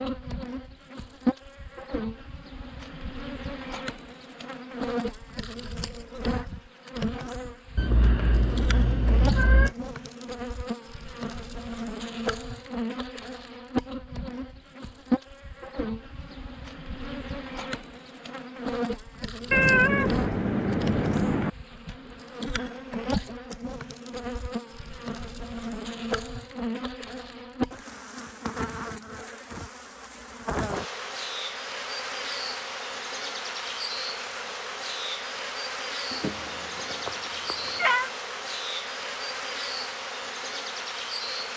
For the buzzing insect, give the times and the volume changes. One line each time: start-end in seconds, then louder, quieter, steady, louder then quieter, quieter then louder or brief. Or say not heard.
0.0-41.5 steady.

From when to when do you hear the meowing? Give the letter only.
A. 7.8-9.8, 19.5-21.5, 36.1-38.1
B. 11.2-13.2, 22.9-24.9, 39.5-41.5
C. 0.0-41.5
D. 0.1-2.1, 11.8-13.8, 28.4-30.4
A.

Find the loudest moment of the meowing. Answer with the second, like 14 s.
20 s.